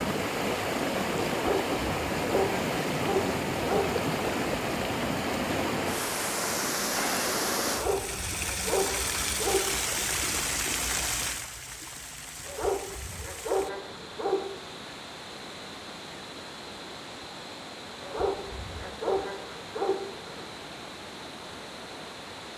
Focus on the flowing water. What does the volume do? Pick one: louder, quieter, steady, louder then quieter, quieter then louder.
quieter.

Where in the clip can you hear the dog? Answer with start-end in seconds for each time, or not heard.
1.2-3.9, 7.7-9.6, 12.4-14.4, 18.0-20.4.